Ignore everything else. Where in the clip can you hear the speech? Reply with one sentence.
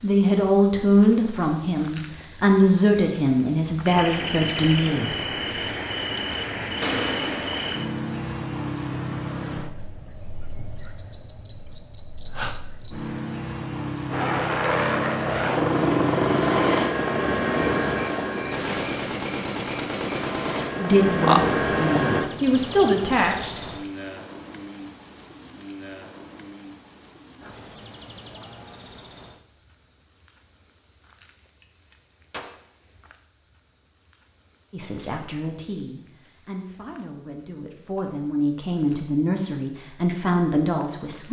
You can hear the speech from 0.0 to 5.2 s, from 20.8 to 23.7 s and from 34.7 to 41.2 s.